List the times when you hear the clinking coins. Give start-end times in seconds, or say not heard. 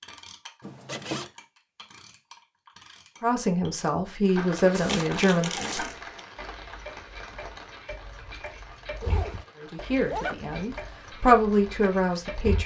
4.8-6.2.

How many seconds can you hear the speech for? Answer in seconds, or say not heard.
5 s.